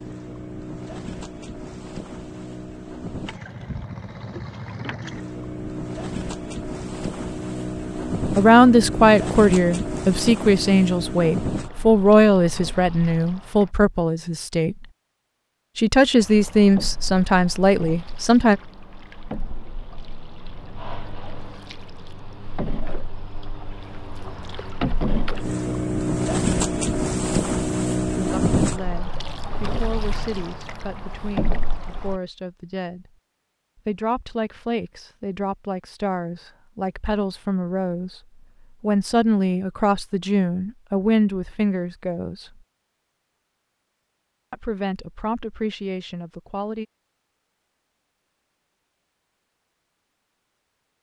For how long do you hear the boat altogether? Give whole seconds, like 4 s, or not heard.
30 s.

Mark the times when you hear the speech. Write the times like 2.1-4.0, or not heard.
8.2-14.8, 15.8-18.6, 28.1-33.1, 33.9-38.2, 38.8-42.5, 44.5-46.9.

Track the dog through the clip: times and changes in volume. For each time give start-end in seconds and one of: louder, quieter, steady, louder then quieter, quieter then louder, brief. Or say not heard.
not heard.